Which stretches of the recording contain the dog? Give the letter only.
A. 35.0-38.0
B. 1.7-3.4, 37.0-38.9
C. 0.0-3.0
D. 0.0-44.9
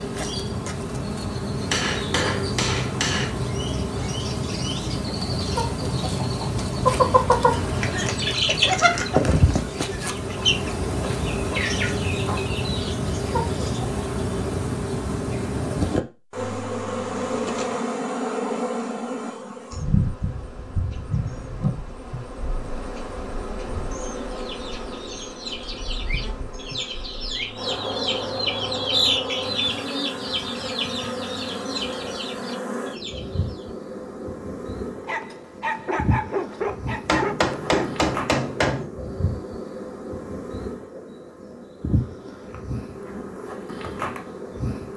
A.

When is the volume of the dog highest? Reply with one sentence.
The loudest moment of the dog is at 37 seconds.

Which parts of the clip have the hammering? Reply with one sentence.
You can hear the hammering from 1.7 to 3.4 s and from 37.0 to 38.9 s.